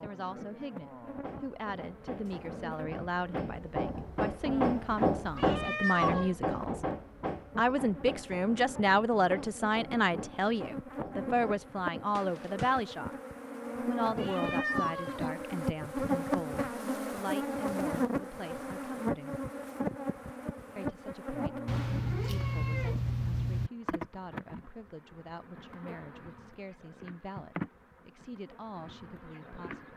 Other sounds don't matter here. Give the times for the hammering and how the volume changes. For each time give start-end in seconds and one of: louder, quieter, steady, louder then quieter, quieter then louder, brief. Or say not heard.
1.1-12.8 louder then quieter.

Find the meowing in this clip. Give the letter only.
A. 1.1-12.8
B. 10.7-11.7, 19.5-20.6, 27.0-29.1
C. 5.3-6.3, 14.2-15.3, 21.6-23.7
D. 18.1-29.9
C.